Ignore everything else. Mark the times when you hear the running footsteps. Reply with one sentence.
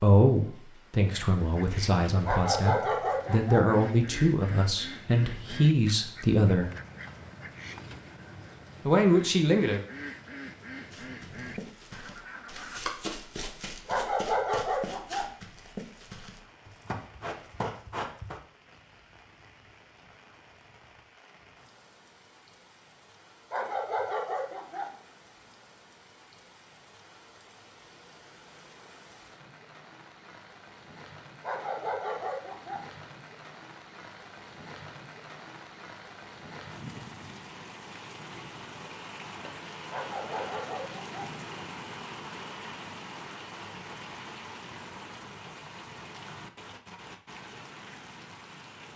You can hear the running footsteps from 10.9 to 18.4 s.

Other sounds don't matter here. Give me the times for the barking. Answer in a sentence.
The barking can be heard from 2.2 to 3.6 s, from 13.8 to 15.2 s, from 23.5 to 24.9 s, from 31.4 to 32.8 s and from 39.9 to 41.3 s.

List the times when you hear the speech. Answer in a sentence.
You can hear the speech from 0.0 to 6.7 s and from 8.8 to 9.8 s.